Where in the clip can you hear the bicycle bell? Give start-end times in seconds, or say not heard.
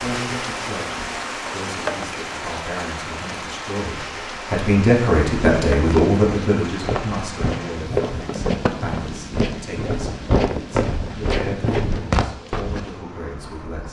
not heard.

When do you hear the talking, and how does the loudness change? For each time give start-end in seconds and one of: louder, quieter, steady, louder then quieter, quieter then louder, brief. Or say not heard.
0.0-13.8 louder then quieter.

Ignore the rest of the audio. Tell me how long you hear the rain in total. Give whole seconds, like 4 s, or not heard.
14 s.